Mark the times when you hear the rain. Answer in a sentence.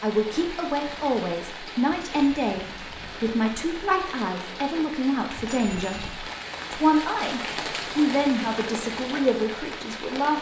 The rain can be heard from 0.0 to 10.3 s.